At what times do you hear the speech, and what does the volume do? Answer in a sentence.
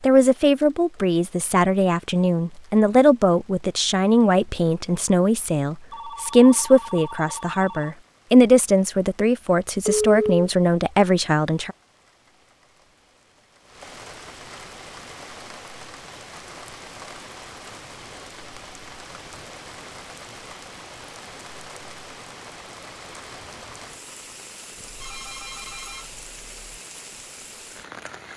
You can hear the speech from 0.0 to 11.8 s, at a steady volume.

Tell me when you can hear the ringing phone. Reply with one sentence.
You can hear the ringing phone from 5.9 to 8.0 s, from 9.8 to 10.4 s and from 24.8 to 26.8 s.